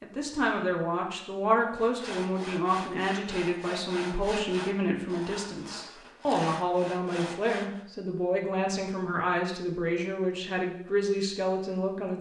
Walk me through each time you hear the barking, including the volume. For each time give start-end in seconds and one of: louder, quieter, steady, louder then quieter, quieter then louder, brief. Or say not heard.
not heard.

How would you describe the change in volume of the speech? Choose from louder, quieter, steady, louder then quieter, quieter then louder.
steady.